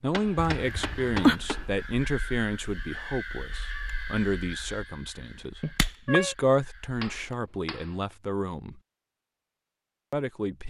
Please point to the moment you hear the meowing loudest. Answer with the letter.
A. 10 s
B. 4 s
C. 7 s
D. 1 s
D.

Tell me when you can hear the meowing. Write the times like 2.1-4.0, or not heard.
0.3-1.4, 5.6-6.3.